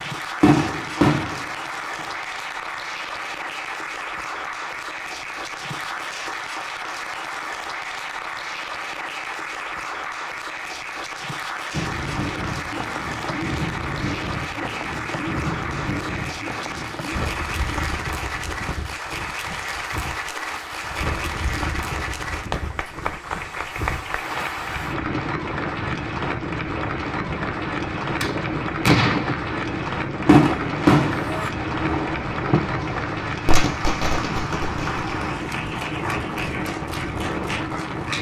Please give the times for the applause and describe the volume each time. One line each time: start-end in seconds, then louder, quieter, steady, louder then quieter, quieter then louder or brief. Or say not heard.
0.0-38.1 steady.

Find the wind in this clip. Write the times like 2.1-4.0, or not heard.
11.7-38.1.